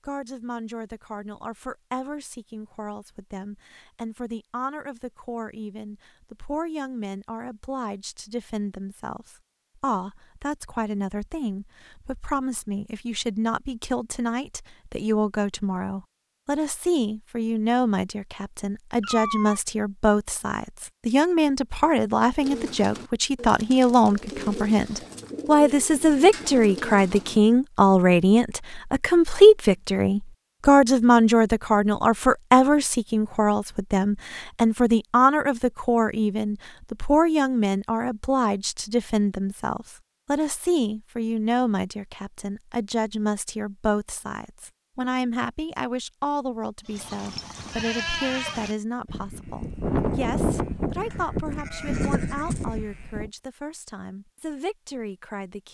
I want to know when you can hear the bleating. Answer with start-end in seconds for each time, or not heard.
46.9-53.3.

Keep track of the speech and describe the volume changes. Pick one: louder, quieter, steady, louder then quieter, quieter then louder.
louder then quieter.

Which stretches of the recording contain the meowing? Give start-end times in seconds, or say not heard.
19.0-19.6.